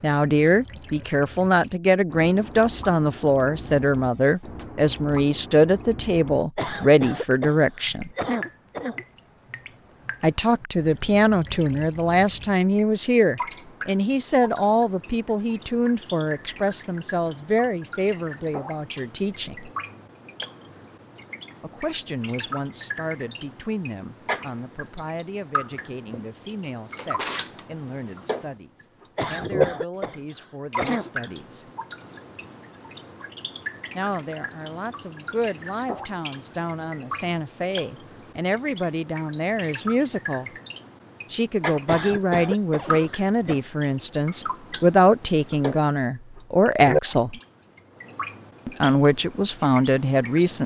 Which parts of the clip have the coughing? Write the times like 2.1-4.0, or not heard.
6.5-9.1, 29.1-31.1, 41.9-43.6.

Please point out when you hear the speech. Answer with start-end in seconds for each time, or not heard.
0.0-8.1, 10.2-19.7, 21.6-31.6, 34.0-40.5, 41.3-47.4, 48.6-50.6.